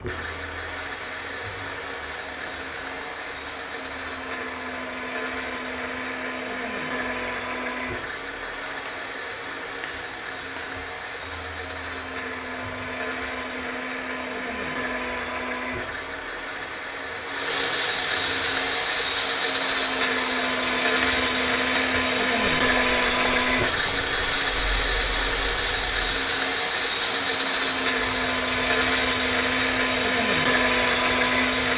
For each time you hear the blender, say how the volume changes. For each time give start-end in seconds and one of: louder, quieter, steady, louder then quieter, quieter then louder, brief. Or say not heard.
0.0-31.7 louder.